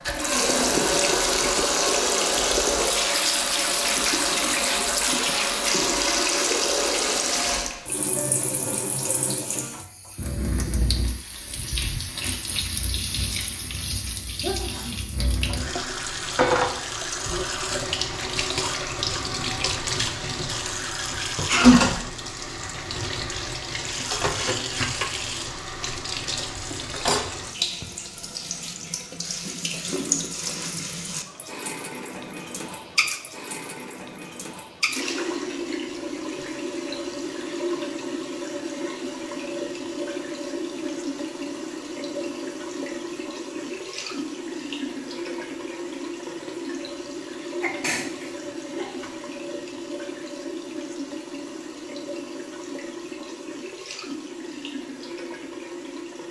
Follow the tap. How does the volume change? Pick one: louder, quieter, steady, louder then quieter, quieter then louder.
quieter.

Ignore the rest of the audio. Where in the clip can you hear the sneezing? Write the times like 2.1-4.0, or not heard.
14.4-15.1, 21.4-21.9, 47.6-49.0.